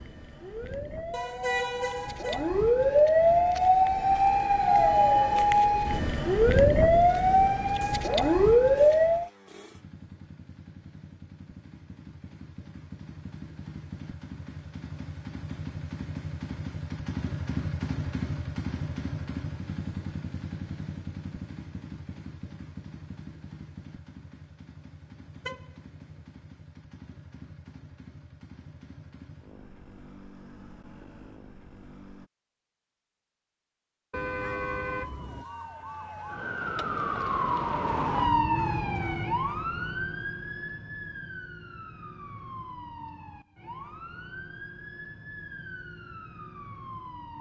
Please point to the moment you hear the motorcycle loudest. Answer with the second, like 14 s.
18 s.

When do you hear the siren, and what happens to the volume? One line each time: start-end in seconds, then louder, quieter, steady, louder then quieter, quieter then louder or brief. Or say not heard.
0.0-9.3 louder
34.4-47.3 louder then quieter.